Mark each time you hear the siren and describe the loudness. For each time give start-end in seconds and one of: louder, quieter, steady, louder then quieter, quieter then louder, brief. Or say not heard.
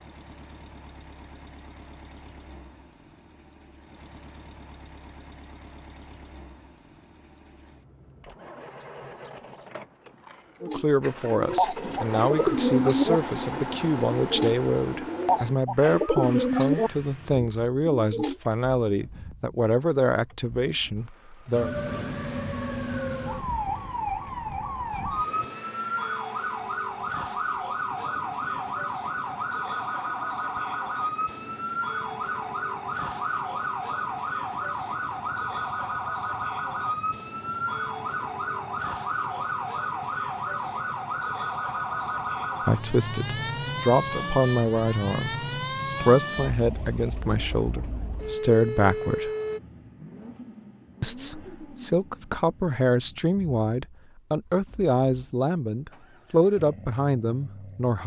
21.5-49.6 steady.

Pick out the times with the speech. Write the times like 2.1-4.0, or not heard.
10.6-21.7, 42.6-49.3, 51.0-58.0.